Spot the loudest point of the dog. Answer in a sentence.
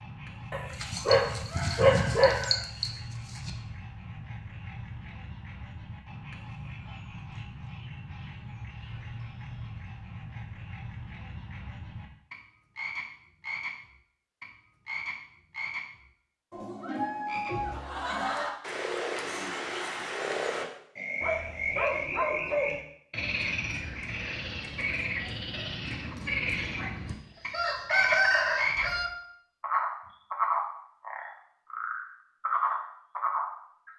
The loudest moment of the dog is at 2 seconds.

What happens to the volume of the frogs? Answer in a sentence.
The volume of the frogs goes up.